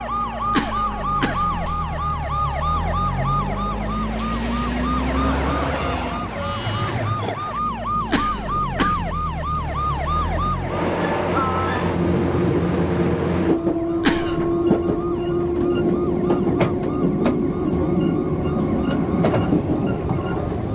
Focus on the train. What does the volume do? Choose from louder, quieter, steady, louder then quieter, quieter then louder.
louder.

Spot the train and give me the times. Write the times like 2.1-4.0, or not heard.
0.0-20.6.